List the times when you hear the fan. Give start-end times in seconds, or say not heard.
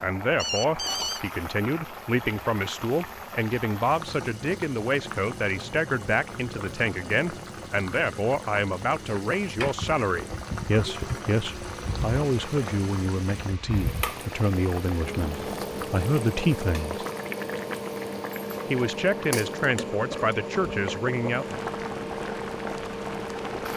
9.6-23.7.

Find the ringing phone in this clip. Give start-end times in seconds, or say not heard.
0.3-1.2.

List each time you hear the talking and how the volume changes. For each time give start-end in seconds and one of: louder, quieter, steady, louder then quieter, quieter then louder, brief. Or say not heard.
0.0-17.1 steady
18.7-21.6 brief.